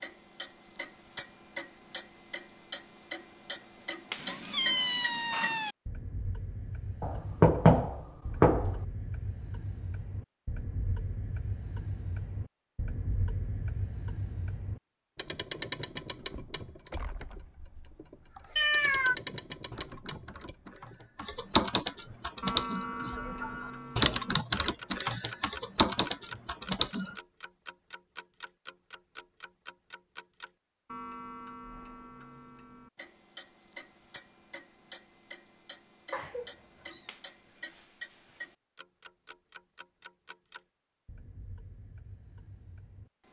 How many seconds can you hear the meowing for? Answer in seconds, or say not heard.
3 s.